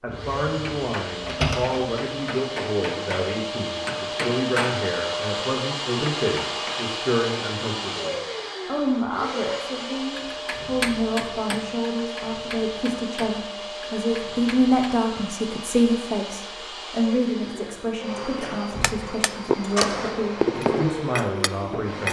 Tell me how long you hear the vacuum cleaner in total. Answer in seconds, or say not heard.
22 s.